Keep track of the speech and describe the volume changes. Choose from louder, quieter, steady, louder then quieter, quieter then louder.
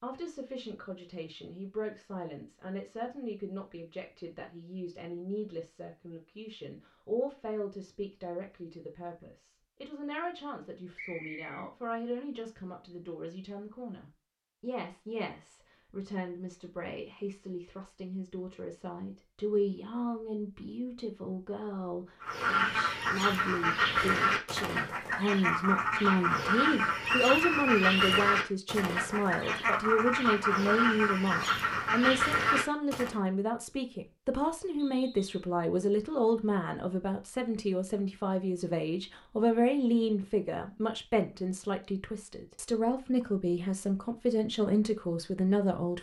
louder.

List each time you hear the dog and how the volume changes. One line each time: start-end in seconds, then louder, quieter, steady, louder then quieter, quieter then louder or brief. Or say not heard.
not heard.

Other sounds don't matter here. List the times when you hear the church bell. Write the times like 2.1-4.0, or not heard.
not heard.